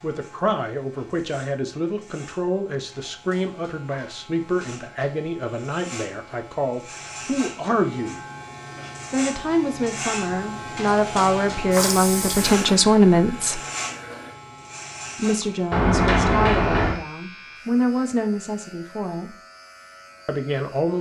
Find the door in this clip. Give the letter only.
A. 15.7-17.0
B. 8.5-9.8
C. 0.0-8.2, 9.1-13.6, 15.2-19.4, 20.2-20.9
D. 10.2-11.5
A.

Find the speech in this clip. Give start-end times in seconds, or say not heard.
0.0-8.2, 9.1-13.6, 15.2-19.4, 20.2-20.9.